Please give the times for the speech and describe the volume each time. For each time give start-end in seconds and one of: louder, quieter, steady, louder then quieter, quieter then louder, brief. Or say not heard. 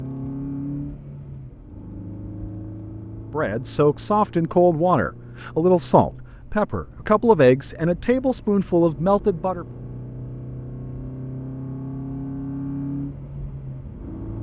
3.3-9.7 steady.